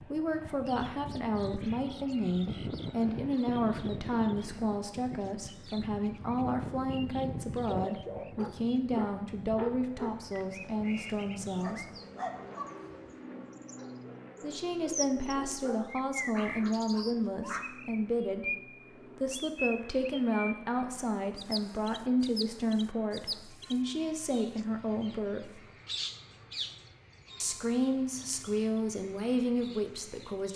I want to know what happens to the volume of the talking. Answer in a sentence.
The loudness of the talking stays about the same.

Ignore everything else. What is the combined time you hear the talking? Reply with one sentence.
The talking can be heard for 26 seconds in total.